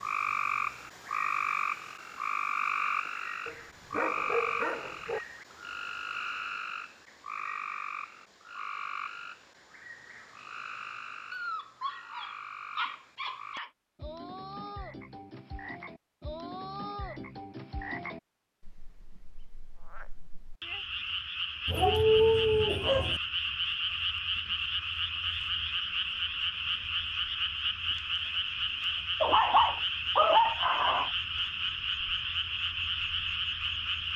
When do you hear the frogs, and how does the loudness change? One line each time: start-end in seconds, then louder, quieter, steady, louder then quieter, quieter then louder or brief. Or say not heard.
0.0-34.1 quieter then louder.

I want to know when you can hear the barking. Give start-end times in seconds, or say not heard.
3.5-5.2, 11.3-13.7, 21.6-23.2, 29.2-31.1.